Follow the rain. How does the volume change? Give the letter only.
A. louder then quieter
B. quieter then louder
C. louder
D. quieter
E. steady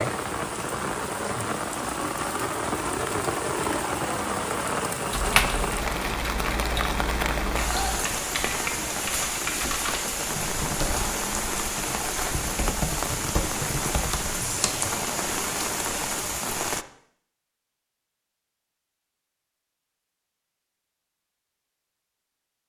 E.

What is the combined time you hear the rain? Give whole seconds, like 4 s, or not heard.
17 s.